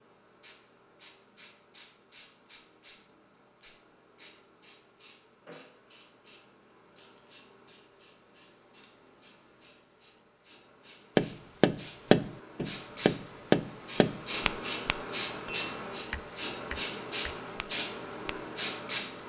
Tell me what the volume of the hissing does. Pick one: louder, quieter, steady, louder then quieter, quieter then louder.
louder.